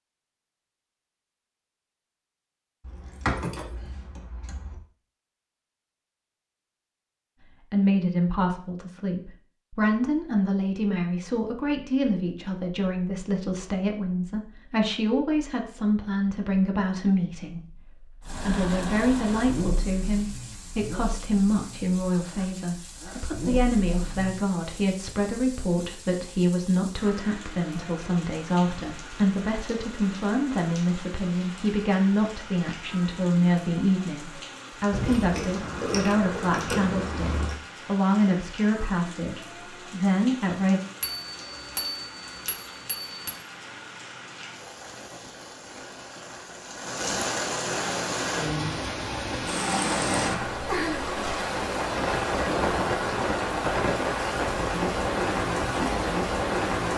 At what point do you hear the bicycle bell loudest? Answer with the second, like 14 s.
42 s.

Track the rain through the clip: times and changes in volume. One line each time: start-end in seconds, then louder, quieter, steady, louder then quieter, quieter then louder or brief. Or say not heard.
18.2-56.9 louder.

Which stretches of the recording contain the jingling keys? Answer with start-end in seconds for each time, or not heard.
2.8-4.8, 34.9-37.5.